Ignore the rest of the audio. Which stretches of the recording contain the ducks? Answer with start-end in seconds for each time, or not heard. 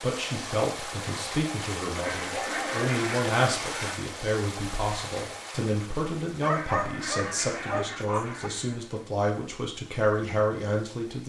1.9-4.0, 6.5-8.8.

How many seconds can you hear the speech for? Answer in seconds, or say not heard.
11 s.